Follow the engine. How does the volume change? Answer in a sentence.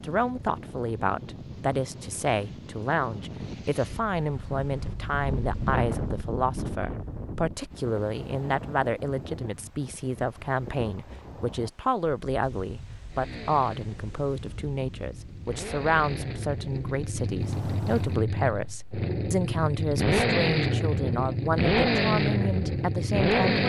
The volume of the engine goes up.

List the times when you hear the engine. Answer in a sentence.
The engine can be heard from 13.1 to 23.6 s.